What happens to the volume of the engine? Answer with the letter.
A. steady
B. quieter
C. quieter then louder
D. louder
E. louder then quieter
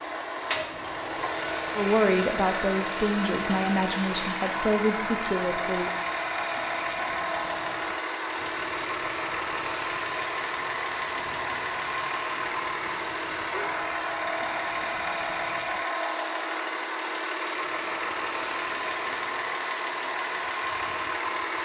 A.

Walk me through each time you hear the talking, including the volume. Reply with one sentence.
The talking can be heard from 1.8 to 5.9 s, at a steady volume.